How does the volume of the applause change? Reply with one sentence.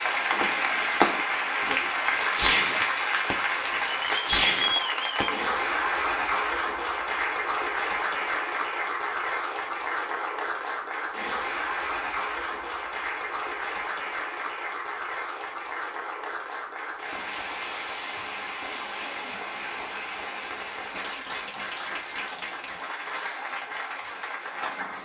The volume of the applause goes down.